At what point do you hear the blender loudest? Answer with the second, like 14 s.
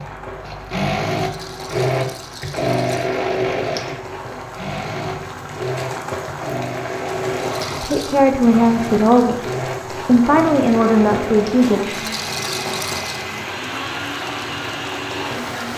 3 s.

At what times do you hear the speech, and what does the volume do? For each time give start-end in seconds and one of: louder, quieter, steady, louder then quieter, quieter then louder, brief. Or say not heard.
7.8-12.1 steady.